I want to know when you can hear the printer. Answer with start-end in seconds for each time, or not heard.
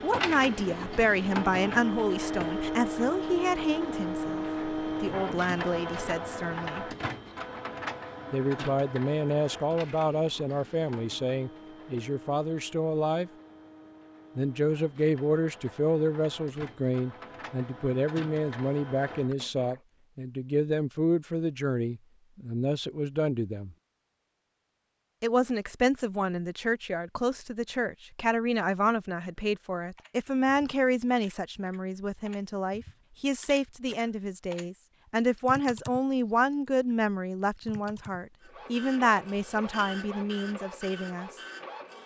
0.0-19.8, 38.4-42.0.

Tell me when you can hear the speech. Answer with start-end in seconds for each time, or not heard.
0.0-6.8, 8.3-13.3, 14.3-23.8, 25.2-41.3.